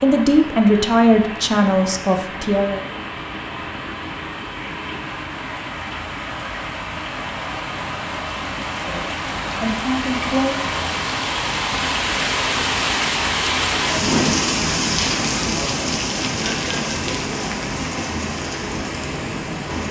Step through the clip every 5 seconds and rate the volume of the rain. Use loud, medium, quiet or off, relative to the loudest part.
medium, medium, loud, loud.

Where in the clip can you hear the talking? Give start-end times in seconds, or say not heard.
0.0-2.9, 8.8-10.8.